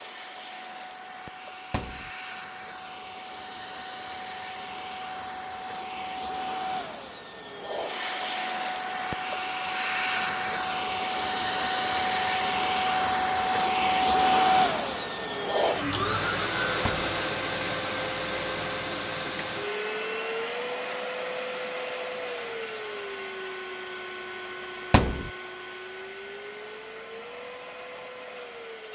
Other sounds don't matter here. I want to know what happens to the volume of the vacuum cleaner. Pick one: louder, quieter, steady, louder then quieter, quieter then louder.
louder then quieter.